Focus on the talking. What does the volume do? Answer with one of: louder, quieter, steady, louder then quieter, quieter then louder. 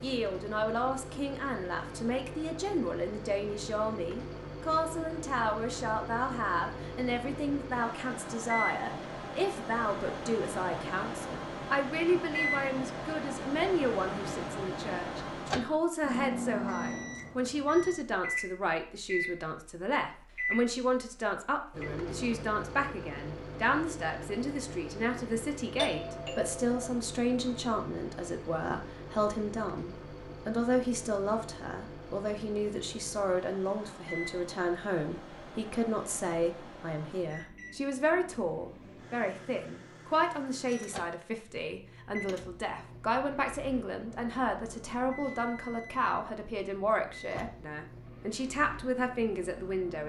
steady.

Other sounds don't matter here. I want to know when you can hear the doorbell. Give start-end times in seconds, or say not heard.
25.8-26.8.